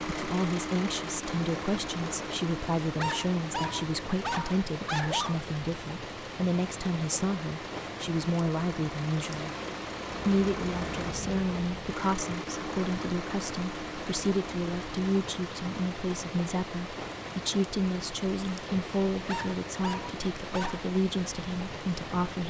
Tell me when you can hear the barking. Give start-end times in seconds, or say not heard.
3.0-5.5, 19.2-20.9.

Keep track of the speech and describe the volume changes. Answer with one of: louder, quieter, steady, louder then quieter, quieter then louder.
steady.